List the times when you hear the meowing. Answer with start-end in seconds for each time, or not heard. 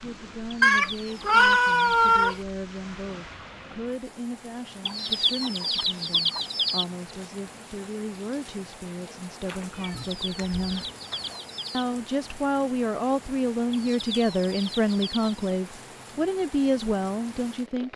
0.6-2.4, 9.4-11.3.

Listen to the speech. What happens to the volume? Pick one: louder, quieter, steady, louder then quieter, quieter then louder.
louder.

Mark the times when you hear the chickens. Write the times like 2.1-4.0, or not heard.
0.7-2.2, 4.8-6.8, 9.8-11.8, 13.7-15.6.